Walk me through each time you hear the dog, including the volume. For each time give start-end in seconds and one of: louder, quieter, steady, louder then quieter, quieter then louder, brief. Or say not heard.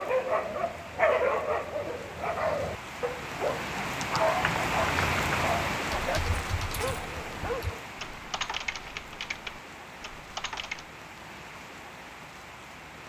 0.0-7.8 quieter.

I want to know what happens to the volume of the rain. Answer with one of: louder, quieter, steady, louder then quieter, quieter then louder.
louder then quieter.